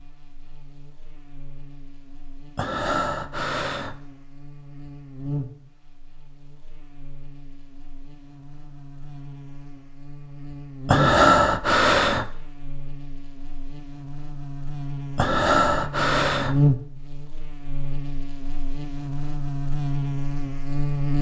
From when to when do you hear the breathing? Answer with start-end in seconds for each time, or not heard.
2.5-4.0, 10.8-12.3, 15.2-16.6.